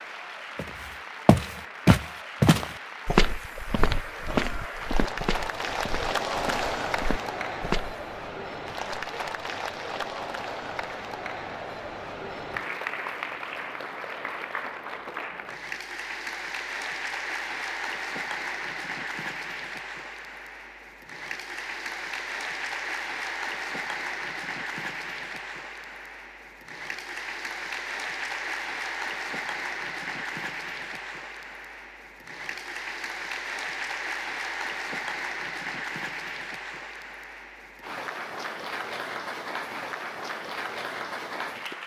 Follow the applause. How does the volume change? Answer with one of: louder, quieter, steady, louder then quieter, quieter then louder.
steady.